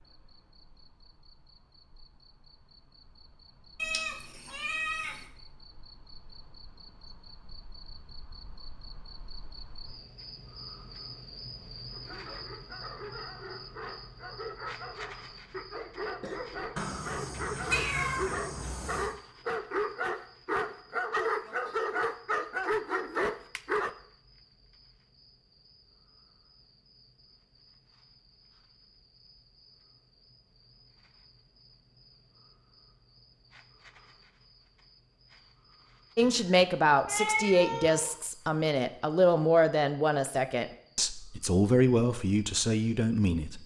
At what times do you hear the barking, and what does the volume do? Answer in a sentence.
You can hear the barking from 11.9 to 23.9 s, getting louder.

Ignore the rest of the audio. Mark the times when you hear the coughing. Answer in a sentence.
You can hear the coughing from 16.2 to 16.9 s.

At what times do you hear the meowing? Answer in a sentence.
The meowing can be heard from 3.8 to 5.2 s, from 16.8 to 19.1 s and from 36.2 to 38.1 s.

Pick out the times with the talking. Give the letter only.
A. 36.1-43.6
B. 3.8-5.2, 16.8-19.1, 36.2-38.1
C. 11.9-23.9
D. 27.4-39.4
A.